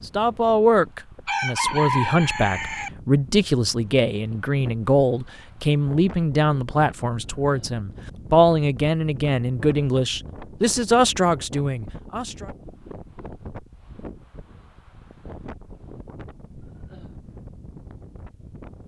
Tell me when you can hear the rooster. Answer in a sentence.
You can hear the rooster from 1.2 to 2.9 s.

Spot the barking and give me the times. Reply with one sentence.
The barking can't be heard in this clip.